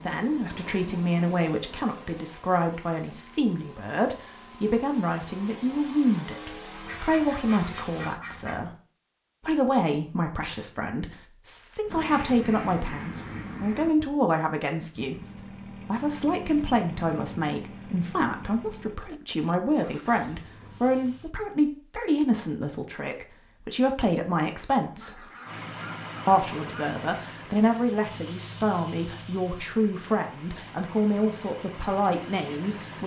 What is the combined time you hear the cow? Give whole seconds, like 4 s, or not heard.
not heard.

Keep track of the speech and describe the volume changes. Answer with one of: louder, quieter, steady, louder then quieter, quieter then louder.
steady.